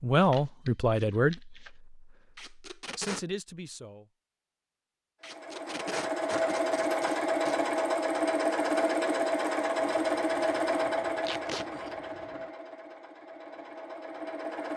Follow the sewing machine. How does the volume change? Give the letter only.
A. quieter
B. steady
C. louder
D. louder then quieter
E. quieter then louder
A.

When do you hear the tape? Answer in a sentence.
The tape can be heard from 2.4 to 3.2 s, from 5.2 to 7.6 s and from 11.2 to 11.7 s.